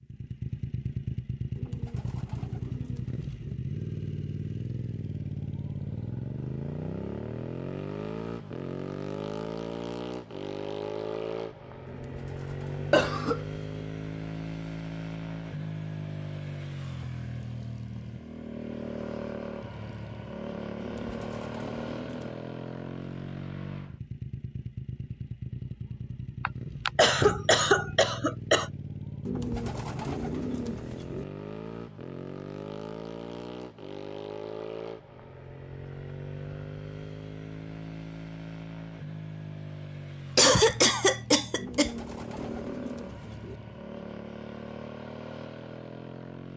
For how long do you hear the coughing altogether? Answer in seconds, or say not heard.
4 s.